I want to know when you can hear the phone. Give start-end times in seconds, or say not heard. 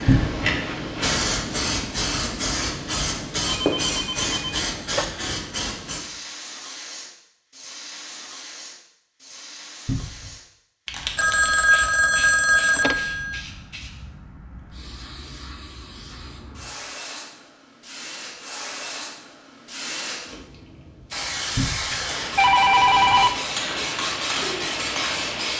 3.5-5.2, 11.2-13.4, 21.9-23.3.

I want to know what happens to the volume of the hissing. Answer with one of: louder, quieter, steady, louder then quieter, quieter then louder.
quieter then louder.